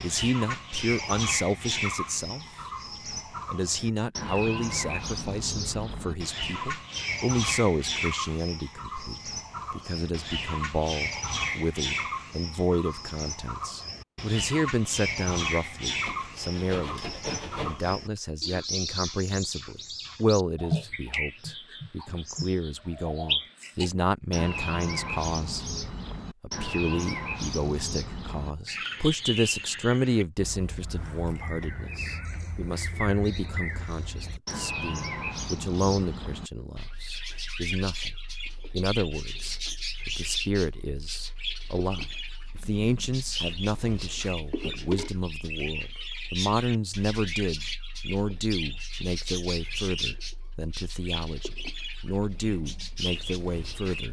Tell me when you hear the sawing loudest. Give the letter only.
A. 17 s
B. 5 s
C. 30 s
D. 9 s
A.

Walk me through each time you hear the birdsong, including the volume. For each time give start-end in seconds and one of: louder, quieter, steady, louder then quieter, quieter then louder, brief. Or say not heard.
0.0-54.0 steady.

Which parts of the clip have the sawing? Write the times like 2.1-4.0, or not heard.
16.0-17.9.